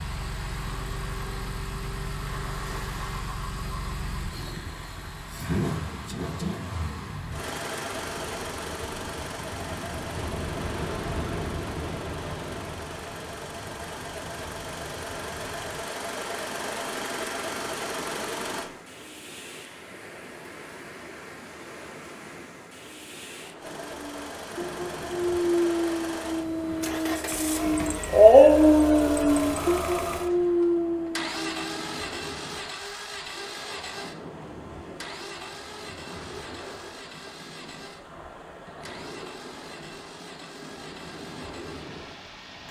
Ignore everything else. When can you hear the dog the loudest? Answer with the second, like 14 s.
28 s.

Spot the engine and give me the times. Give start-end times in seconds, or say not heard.
0.0-18.7, 23.6-42.6.